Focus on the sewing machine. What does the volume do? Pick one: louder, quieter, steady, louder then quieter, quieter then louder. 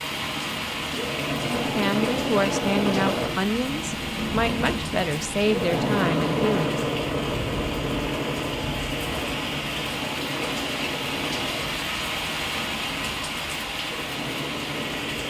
quieter.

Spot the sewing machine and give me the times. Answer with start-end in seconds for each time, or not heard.
0.0-15.2.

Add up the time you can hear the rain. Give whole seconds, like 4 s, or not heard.
15 s.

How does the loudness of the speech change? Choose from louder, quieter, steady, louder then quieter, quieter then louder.
steady.